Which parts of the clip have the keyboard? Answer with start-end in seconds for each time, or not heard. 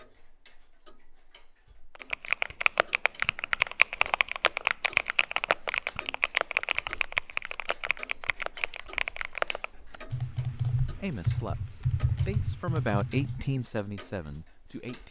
2.0-13.4.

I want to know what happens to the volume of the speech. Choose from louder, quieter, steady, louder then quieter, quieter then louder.
louder then quieter.